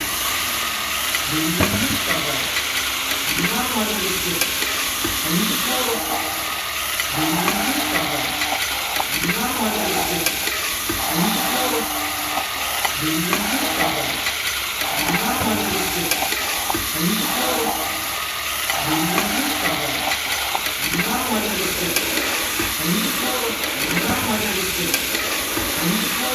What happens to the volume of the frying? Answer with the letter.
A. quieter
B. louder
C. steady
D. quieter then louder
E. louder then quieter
C.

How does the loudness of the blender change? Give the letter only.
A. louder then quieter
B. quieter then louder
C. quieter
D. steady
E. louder
D.